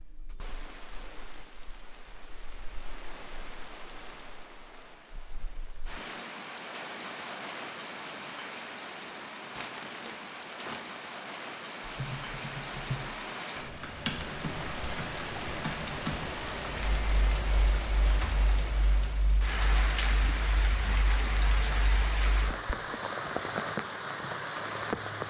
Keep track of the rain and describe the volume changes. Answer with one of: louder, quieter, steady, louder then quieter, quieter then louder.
louder.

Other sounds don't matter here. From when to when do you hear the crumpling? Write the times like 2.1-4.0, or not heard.
9.6-11.1.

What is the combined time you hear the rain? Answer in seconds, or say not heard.
25 s.